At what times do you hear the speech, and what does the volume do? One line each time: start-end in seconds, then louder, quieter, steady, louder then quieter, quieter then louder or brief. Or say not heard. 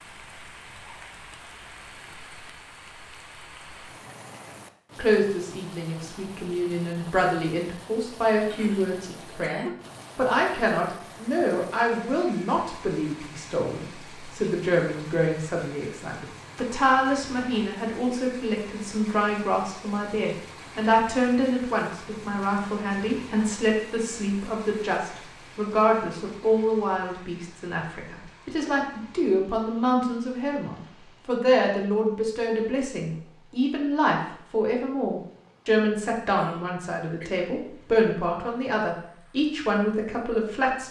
5.0-40.8 steady.